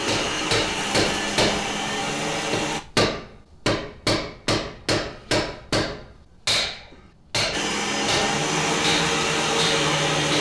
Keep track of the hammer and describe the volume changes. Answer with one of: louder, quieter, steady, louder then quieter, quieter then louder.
steady.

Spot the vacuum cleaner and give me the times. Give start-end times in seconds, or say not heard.
0.0-2.8, 7.5-10.3.